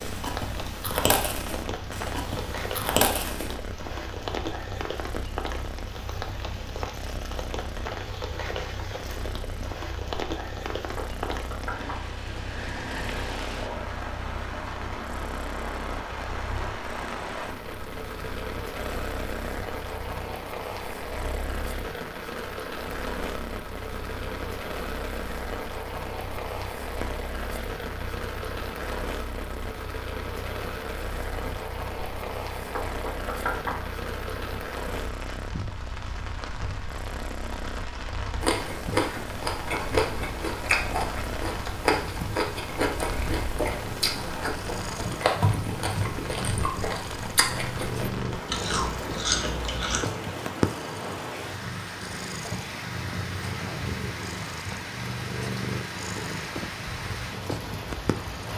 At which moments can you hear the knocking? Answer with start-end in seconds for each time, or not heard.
10.9-12.1, 32.8-33.9.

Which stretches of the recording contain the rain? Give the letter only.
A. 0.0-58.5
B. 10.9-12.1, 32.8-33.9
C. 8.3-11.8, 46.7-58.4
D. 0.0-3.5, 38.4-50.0
A.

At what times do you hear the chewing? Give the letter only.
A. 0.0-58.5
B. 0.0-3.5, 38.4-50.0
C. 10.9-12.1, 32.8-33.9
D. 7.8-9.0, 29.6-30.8
B.